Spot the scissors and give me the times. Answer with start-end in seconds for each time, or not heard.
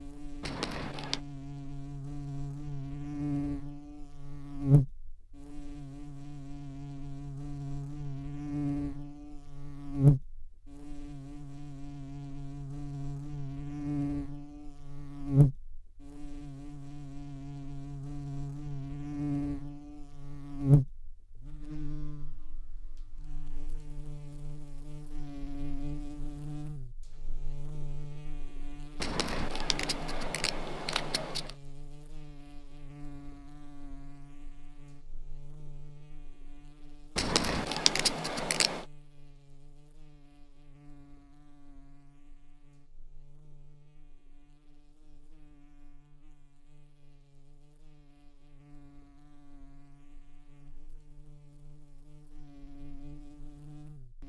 0.4-1.2, 29.0-31.5, 37.1-38.9.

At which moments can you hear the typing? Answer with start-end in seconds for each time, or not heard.
not heard.